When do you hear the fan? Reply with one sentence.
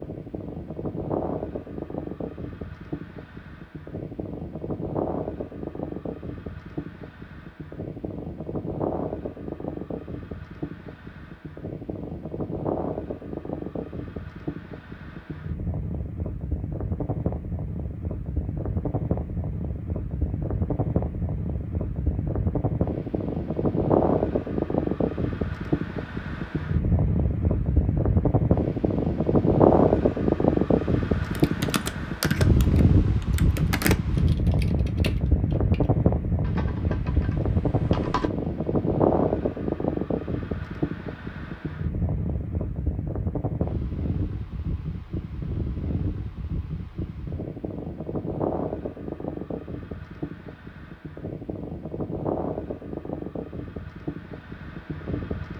You can hear the fan from 0.0 to 55.5 s.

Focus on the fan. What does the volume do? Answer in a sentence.
The loudness of the fan goes up, then down.